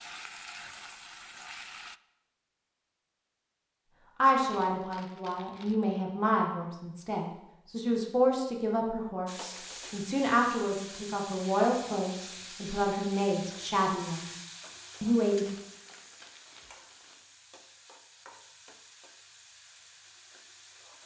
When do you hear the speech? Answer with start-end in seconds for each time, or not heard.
4.2-14.3, 15.0-15.4.